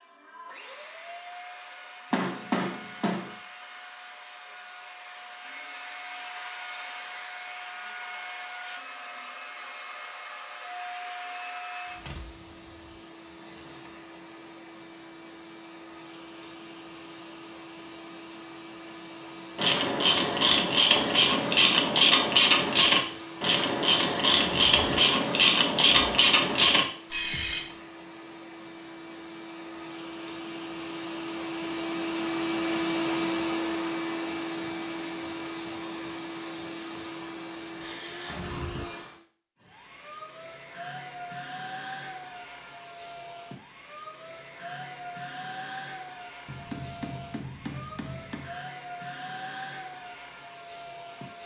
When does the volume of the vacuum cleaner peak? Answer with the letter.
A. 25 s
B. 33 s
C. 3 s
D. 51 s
B.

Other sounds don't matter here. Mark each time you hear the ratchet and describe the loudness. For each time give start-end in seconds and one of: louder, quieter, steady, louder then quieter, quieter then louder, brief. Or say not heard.
19.6-27.6 steady.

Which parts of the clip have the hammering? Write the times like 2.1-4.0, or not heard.
2.1-3.4, 46.5-48.5.